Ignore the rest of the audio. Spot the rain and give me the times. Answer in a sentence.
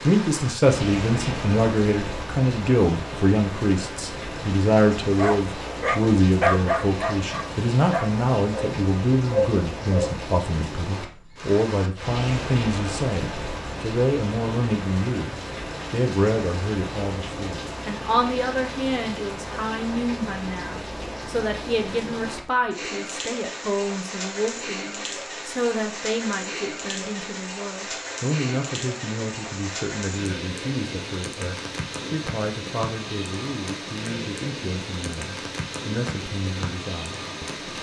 You can hear the rain from 0.0 to 37.7 s.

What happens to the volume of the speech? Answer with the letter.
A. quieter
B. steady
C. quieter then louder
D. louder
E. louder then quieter
A.